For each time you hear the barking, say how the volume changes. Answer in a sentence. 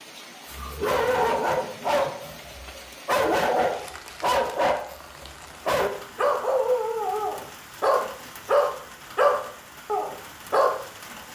The barking can be heard from 0.5 to 10.8 s, at a steady volume.